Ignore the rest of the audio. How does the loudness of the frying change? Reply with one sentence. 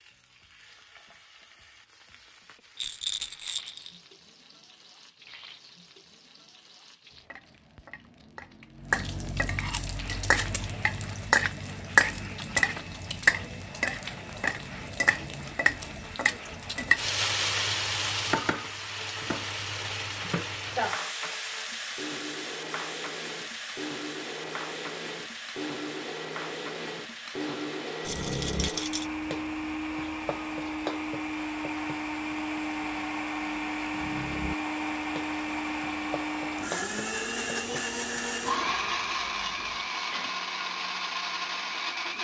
The loudness of the frying goes up, then down.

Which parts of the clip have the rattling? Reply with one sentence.
The rattling can be heard from 2.8 to 4.0 s and from 28.1 to 29.1 s.